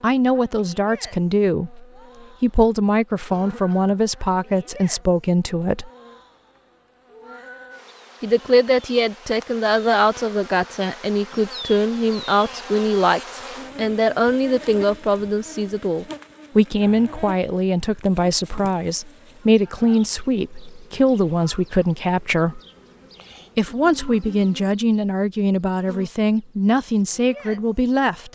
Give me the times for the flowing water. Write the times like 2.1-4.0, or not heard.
not heard.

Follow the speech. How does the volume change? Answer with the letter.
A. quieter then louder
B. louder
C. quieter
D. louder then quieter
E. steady
E.